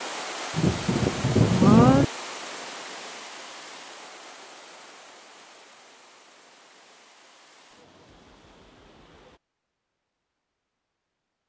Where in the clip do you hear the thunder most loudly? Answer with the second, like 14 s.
2 s.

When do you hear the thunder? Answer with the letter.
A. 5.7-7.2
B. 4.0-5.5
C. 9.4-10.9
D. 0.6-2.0
D.